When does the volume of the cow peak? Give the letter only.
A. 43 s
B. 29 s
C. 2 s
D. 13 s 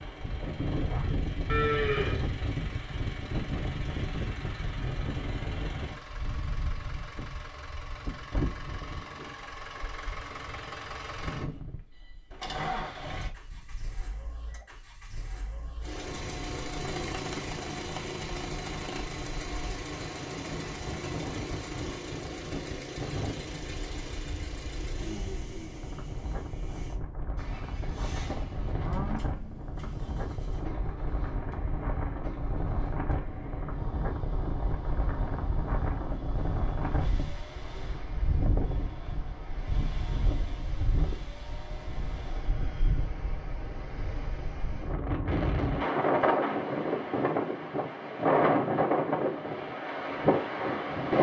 C.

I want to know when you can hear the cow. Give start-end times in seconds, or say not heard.
1.4-2.3, 27.8-29.3.